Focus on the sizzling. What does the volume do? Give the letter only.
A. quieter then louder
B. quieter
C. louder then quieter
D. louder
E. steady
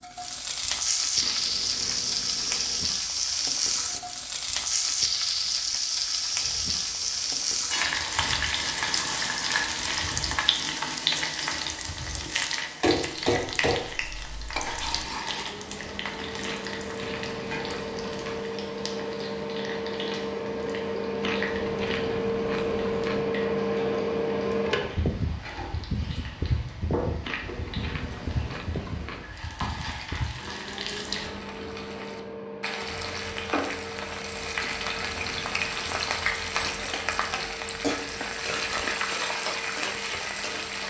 A.